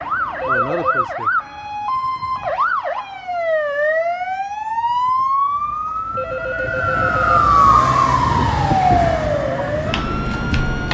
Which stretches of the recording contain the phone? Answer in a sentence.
The phone can be heard from 0.4 to 1.1 s and from 6.2 to 7.4 s.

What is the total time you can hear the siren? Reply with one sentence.
You can hear the siren for 11 seconds altogether.